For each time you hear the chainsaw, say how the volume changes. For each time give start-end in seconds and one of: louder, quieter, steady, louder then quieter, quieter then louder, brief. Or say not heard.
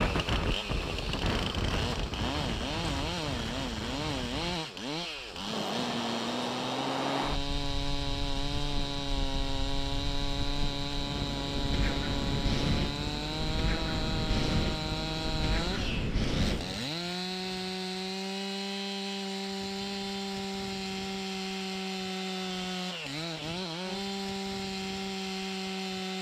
0.0-26.1 steady.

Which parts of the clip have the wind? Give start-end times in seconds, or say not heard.
0.0-16.8.